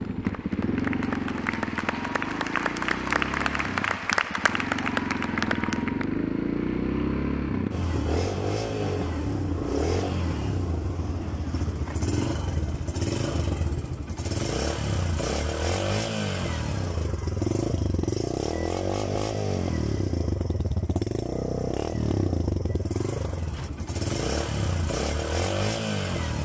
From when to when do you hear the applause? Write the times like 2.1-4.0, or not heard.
0.0-6.2.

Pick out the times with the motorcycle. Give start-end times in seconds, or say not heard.
0.0-26.4.